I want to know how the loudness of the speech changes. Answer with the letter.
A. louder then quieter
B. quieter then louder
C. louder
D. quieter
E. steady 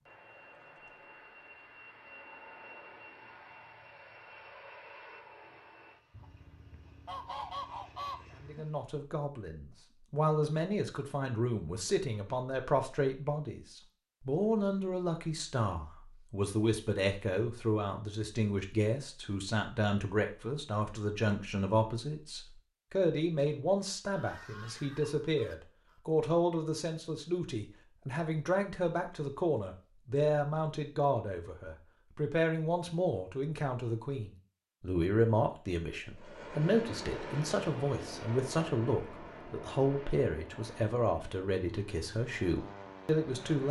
E.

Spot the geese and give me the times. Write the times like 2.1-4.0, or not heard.
6.1-8.7, 24.1-26.0.